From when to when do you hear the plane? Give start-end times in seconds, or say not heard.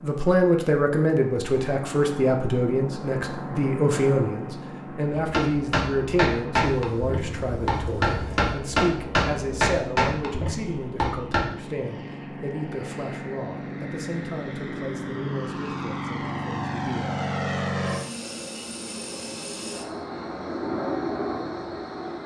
0.0-22.2.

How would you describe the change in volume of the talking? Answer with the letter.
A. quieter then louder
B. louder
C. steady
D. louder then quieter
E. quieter
E.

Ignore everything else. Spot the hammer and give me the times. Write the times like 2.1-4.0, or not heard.
5.2-11.4.